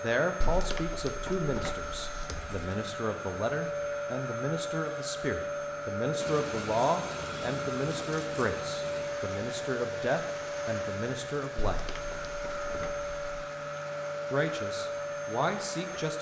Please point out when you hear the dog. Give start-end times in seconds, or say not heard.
not heard.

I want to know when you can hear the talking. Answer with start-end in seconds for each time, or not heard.
0.0-11.8, 14.3-16.1.